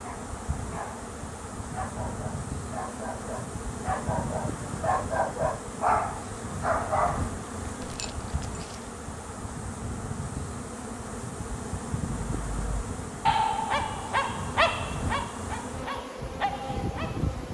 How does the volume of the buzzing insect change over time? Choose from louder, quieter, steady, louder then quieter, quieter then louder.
steady.